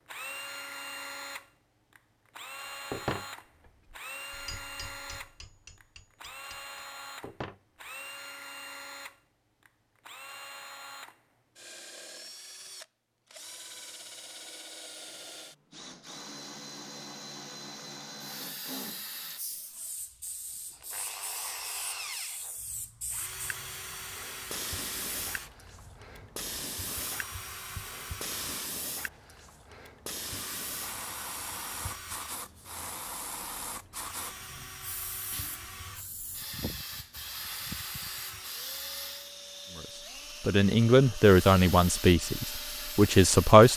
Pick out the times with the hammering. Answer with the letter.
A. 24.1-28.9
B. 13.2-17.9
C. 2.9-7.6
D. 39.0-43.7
C.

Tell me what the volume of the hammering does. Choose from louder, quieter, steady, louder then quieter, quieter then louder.
louder then quieter.